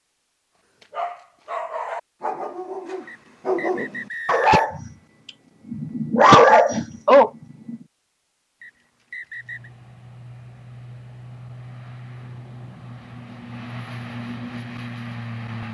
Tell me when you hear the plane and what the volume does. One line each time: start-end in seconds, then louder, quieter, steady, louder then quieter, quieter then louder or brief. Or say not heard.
9.3-15.6 louder.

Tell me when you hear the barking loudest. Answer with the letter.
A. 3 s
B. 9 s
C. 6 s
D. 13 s
C.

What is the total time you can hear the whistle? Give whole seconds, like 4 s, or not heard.
3 s.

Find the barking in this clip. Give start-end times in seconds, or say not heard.
0.8-4.9, 5.7-7.8.